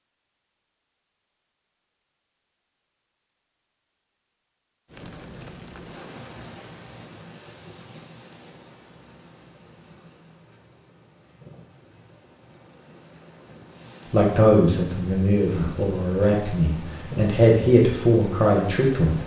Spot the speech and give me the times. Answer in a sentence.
You can hear the speech from 14.1 to 19.2 s.